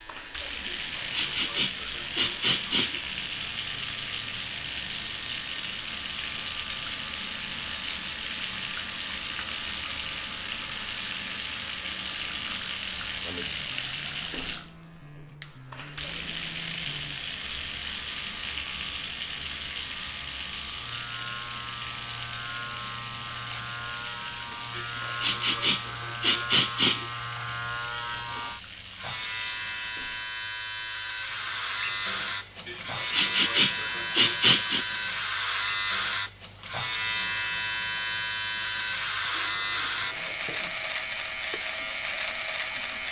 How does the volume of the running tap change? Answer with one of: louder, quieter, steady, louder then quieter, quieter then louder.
quieter.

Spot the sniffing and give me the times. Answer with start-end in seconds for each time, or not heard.
0.8-3.0, 24.8-27.1, 32.6-34.9.